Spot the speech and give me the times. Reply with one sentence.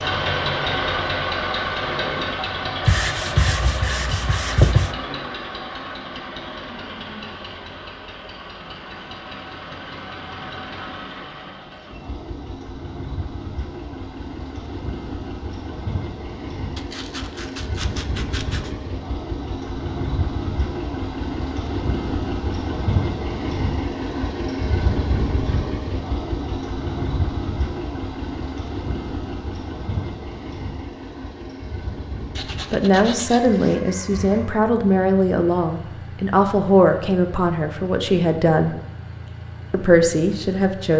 You can hear the speech from 32.7 to 38.8 s and from 39.7 to 40.9 s.